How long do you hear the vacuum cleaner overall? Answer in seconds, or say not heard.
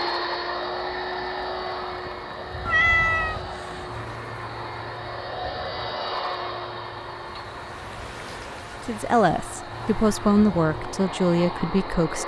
12 s.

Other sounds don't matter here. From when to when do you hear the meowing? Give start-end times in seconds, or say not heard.
2.6-3.5.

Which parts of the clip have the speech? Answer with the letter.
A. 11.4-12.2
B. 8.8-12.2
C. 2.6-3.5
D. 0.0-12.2
B.